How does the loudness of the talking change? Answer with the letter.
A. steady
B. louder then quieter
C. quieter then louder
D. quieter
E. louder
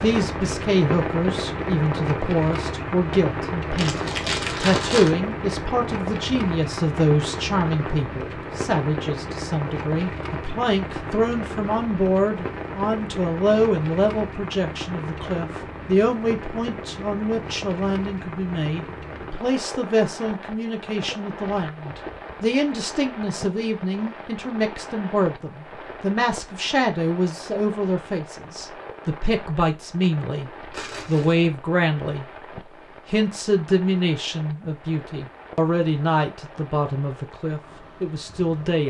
A.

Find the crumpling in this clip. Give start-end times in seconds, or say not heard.
3.8-5.1, 30.7-31.4.